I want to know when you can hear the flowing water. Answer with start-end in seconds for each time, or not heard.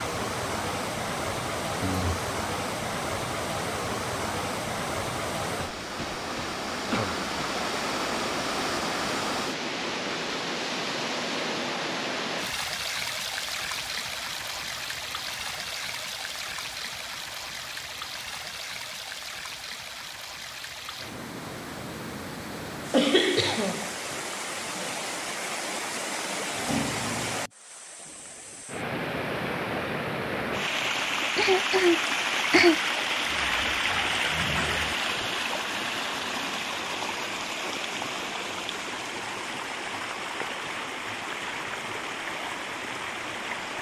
0.0-43.7.